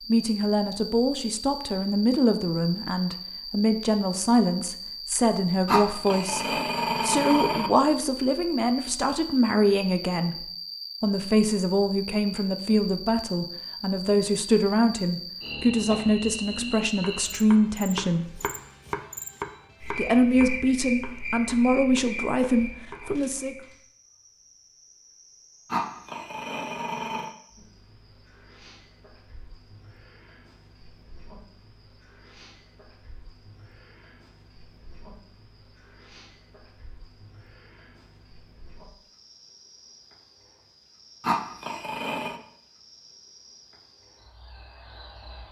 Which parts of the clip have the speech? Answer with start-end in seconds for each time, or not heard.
0.1-18.4, 19.9-23.6.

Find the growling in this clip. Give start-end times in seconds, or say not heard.
5.7-7.7, 25.7-27.3, 41.2-42.4.